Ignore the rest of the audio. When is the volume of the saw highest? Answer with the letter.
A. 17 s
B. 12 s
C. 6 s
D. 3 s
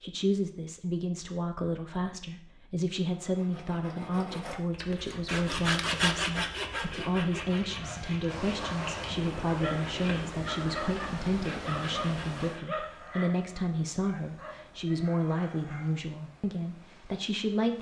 C.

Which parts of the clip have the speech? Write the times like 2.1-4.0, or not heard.
0.0-17.7.